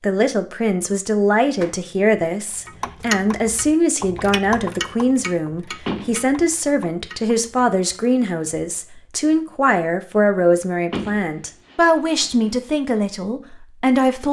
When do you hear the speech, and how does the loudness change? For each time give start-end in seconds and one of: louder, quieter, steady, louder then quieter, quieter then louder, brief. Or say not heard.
0.0-14.2 steady.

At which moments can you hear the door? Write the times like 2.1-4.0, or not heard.
1.4-1.8, 5.8-6.2, 10.9-12.6.